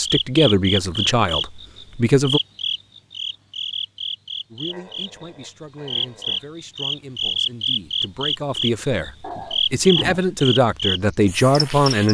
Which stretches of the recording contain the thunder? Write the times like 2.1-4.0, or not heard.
not heard.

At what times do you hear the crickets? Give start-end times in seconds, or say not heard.
0.0-12.0.